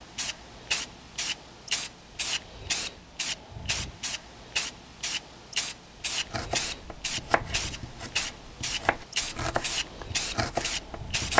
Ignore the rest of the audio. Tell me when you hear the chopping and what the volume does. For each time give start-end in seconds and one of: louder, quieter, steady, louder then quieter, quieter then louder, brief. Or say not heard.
6.3-11.3 quieter then louder.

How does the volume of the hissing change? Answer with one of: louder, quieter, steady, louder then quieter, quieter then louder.
steady.